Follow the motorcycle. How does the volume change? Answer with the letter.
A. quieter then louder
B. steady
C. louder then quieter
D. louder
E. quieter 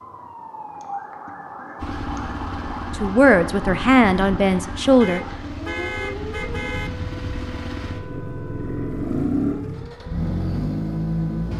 D.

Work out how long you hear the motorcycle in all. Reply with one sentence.
The motorcycle can be heard for 10 seconds in total.